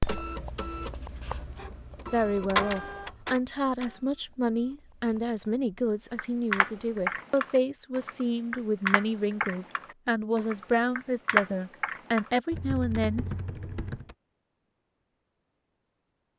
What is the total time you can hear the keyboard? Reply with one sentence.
The keyboard can be heard for 8 seconds in total.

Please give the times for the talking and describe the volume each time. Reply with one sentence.
You can hear the talking from 2.1 to 13.2 s, at a steady volume.